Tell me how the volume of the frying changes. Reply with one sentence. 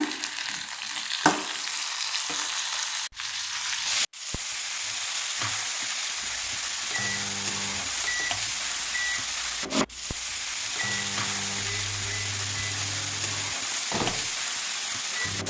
The volume of the frying stays about the same.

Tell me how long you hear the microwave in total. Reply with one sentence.
The microwave can be heard for 9 seconds in total.